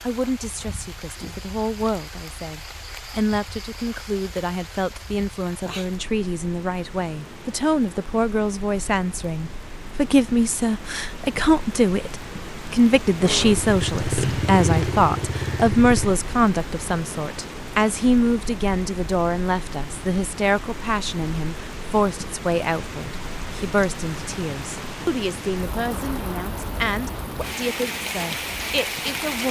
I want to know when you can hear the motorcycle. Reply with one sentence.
The motorcycle can be heard from 13.2 to 16.1 s.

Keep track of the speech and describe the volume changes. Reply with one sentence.
The loudness of the speech goes up, then down.